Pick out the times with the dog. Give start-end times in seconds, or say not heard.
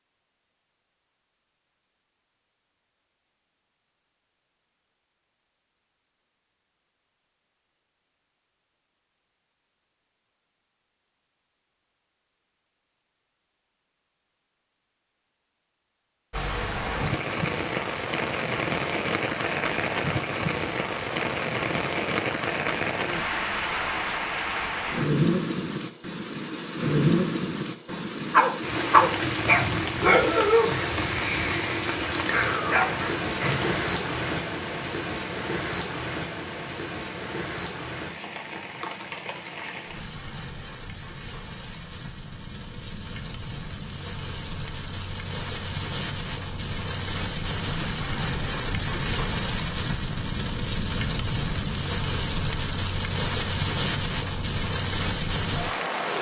28.3-33.8.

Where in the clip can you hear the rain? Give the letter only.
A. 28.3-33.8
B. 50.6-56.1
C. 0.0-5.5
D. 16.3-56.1
D.